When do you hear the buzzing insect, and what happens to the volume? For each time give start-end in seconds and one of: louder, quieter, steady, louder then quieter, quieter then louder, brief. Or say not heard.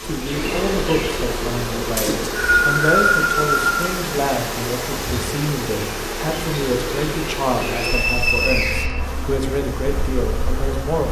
0.0-11.0 quieter.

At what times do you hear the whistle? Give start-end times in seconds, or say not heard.
1.9-3.9, 7.7-8.9.